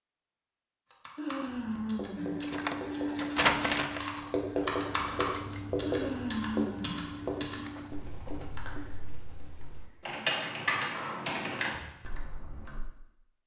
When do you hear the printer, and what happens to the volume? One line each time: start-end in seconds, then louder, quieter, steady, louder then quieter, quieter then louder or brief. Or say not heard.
2.1-7.9 quieter.